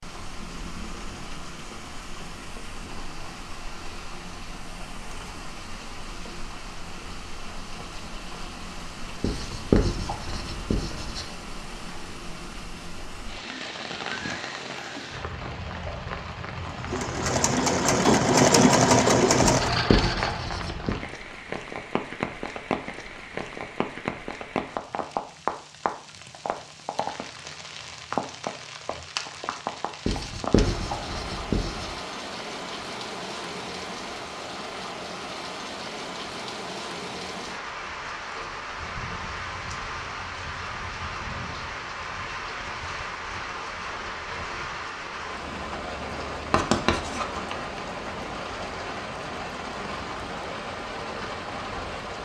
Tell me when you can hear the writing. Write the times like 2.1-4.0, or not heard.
9.2-11.2, 19.4-20.9, 30.1-31.9, 46.5-47.2.